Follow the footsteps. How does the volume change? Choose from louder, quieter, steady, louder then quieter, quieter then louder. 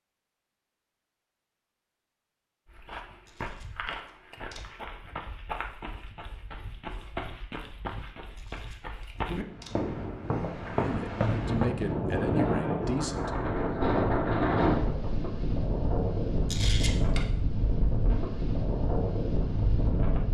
louder.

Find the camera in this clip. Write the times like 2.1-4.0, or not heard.
3.2-4.7, 8.3-9.8, 16.4-17.2.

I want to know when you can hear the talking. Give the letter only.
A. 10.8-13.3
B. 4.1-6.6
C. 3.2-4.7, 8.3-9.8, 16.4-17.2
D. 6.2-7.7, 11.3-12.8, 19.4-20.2
A.